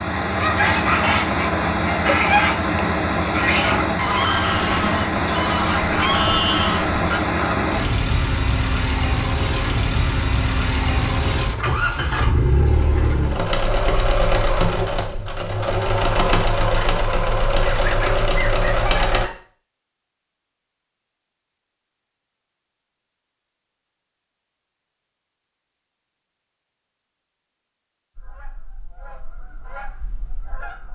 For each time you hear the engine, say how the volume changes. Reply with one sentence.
The engine can be heard from 0.0 to 19.3 s, at a steady volume.